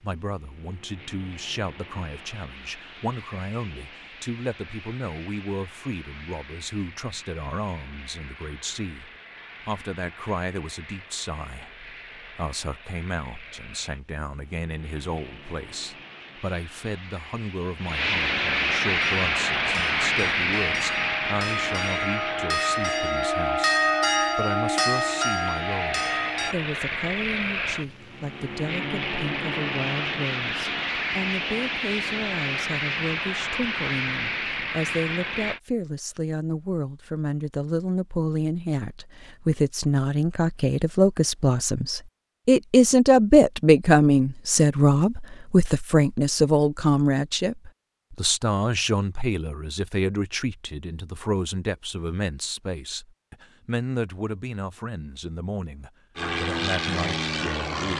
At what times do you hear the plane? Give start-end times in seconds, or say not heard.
0.0-35.6, 56.1-57.9.